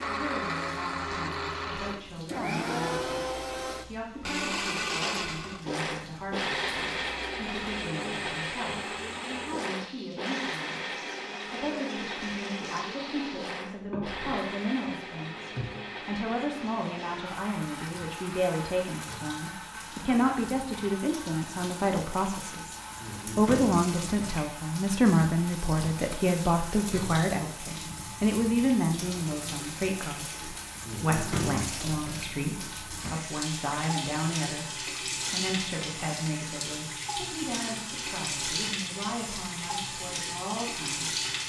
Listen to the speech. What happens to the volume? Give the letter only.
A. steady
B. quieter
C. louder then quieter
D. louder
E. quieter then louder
C.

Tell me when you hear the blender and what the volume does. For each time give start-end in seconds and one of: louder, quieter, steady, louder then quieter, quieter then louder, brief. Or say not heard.
0.0-41.4 quieter.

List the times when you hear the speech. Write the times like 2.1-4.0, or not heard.
0.1-34.7, 35.3-41.1.